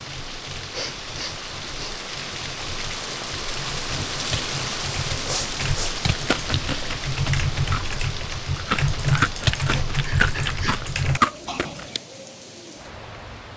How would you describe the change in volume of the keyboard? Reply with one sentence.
The volume of the keyboard goes up.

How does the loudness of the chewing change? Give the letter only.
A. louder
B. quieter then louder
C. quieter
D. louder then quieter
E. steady
A.